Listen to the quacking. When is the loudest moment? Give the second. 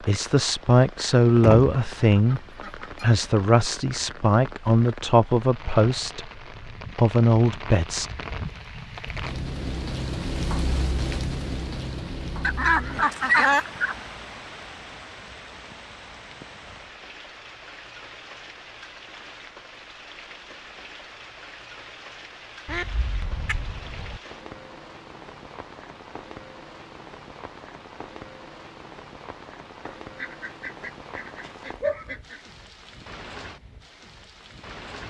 13 s.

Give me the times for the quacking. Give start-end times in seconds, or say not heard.
1.4-3.2, 12.4-13.9, 22.6-24.2, 29.9-32.4.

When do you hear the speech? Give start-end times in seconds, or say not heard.
0.1-2.4, 3.0-6.2, 7.0-8.1.